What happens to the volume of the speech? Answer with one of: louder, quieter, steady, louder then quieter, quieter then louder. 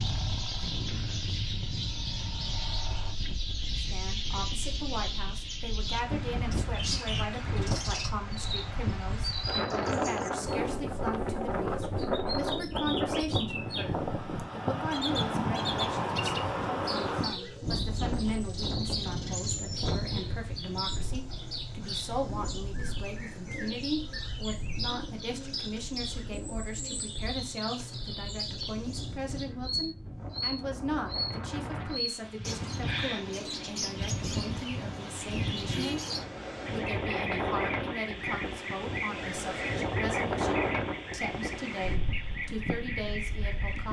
steady.